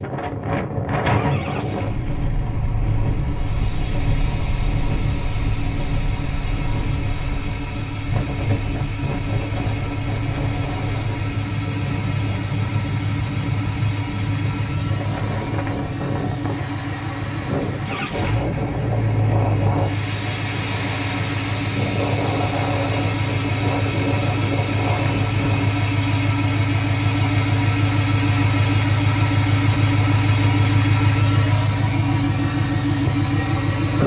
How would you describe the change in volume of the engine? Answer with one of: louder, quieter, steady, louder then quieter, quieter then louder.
louder.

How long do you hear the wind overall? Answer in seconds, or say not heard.
26 s.